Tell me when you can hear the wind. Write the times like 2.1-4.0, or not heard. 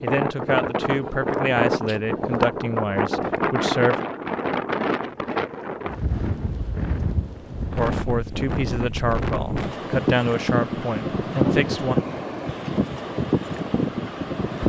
0.0-14.6.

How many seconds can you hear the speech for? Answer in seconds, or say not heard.
8 s.